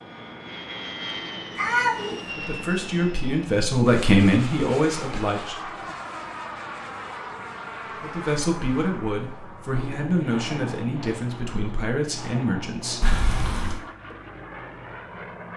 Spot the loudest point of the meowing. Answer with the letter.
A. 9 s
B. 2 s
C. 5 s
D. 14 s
B.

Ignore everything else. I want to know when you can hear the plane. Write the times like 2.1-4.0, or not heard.
0.0-15.5.